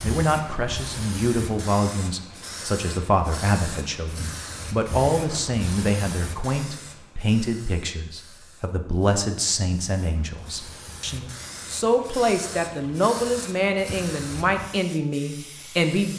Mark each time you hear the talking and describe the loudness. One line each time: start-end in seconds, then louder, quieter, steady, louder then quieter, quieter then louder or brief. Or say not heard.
0.0-16.1 steady.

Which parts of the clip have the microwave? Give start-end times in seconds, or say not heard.
not heard.